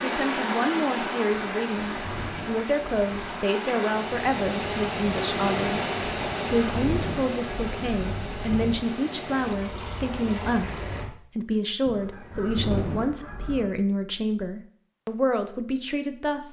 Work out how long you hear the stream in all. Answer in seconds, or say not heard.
11 s.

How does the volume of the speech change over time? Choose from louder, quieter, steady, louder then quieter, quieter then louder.
steady.